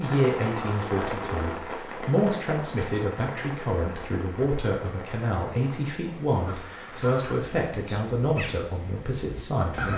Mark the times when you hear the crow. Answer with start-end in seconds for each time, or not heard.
6.5-9.9.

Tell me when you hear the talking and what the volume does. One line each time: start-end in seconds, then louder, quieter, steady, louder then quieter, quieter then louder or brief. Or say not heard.
0.0-9.9 steady.